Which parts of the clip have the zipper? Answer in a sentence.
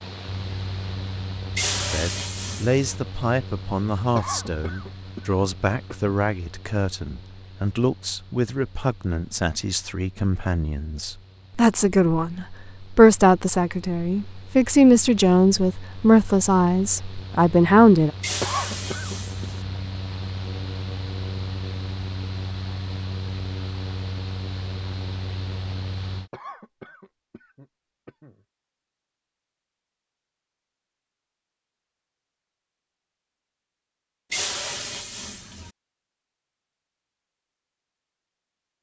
You can't hear the zipper here.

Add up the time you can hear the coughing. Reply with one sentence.
The coughing can be heard for 5 seconds in total.